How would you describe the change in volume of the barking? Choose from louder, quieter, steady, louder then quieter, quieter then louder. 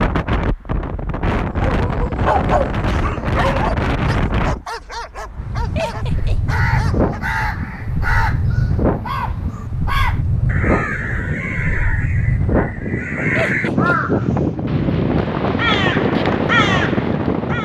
quieter.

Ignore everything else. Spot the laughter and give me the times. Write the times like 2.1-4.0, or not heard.
5.8-6.5, 13.3-14.2.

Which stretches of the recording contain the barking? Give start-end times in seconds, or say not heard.
1.6-7.2.